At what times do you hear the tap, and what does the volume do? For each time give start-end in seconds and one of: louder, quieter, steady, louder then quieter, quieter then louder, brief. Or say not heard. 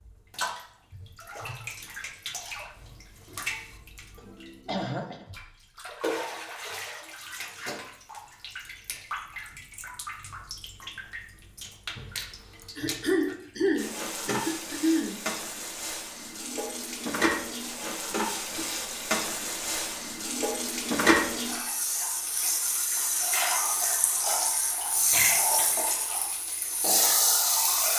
0.0-27.9 louder.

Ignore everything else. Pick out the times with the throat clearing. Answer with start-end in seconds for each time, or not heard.
4.2-5.2, 12.6-15.2, 25.1-25.7.